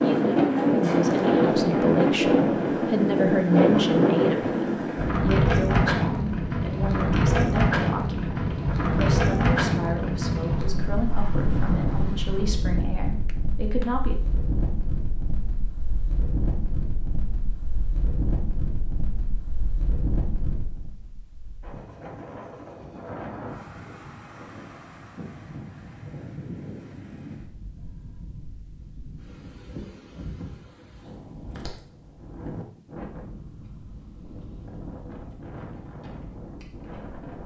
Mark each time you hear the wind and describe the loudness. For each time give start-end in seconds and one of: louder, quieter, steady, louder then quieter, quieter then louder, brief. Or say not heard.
0.0-37.4 quieter.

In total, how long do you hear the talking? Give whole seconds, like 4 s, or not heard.
14 s.